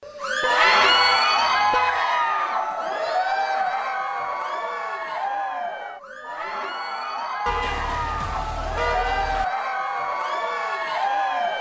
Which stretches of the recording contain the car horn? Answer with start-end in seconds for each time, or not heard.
0.4-2.0, 7.5-9.4.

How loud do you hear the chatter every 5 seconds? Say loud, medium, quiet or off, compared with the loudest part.
loud, medium, loud.